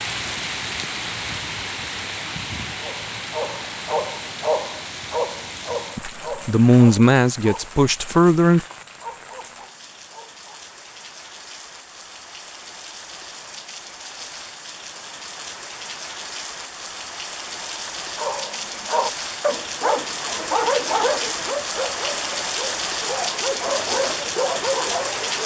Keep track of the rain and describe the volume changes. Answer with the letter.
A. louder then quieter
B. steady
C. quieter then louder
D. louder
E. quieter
C.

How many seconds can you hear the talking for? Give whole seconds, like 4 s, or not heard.
3 s.